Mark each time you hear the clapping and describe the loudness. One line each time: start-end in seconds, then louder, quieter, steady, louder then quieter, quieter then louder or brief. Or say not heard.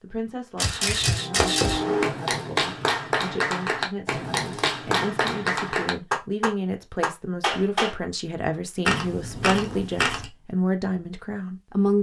1.4-8.0 steady.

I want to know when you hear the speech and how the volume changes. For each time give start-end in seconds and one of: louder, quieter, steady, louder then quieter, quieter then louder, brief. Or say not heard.
0.0-11.9 louder.